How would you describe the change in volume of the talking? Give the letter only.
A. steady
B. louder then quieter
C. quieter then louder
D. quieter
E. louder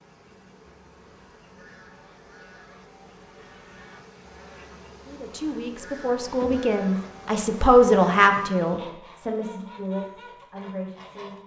B.